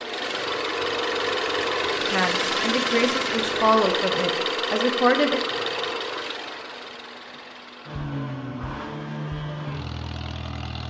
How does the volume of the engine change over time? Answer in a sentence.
The loudness of the engine goes down.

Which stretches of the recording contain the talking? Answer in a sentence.
The talking can be heard from 2.0 to 5.4 s.